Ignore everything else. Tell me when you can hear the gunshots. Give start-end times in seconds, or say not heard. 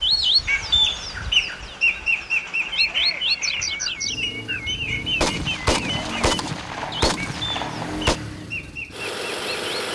5.2-8.2.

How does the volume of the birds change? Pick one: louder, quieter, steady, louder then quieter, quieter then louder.
quieter.